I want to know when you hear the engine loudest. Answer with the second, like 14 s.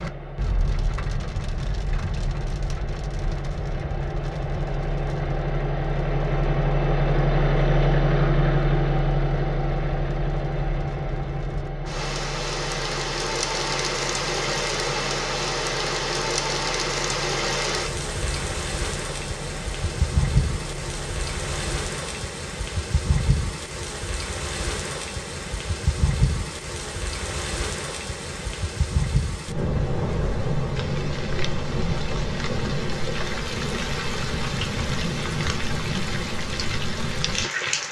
8 s.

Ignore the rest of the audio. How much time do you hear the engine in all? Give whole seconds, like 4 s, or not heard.
22 s.